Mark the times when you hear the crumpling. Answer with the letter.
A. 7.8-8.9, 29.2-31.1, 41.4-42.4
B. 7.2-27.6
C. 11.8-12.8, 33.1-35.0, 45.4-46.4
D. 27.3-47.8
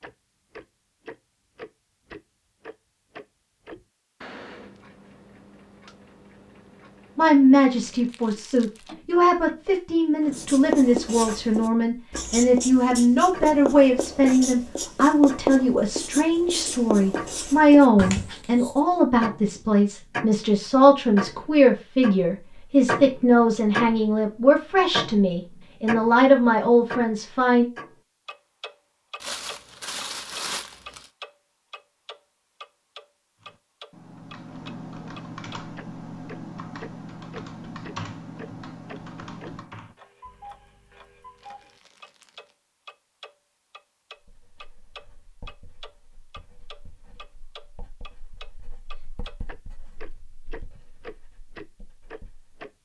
A.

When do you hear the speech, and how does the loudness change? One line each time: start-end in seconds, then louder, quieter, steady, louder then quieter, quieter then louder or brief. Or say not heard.
7.2-27.6 steady.